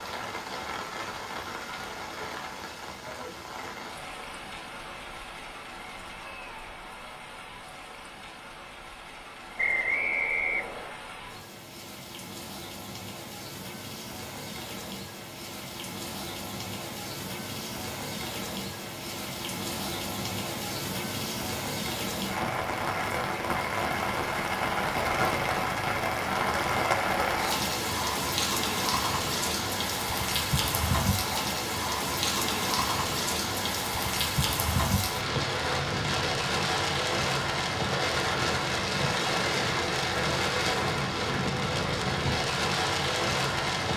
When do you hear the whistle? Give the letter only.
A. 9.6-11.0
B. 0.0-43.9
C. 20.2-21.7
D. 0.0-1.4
A.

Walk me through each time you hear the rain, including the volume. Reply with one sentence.
You can hear the rain from 0.0 to 43.9 s, getting louder.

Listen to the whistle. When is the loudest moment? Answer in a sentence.
The volume of the whistle peaks at 10 seconds.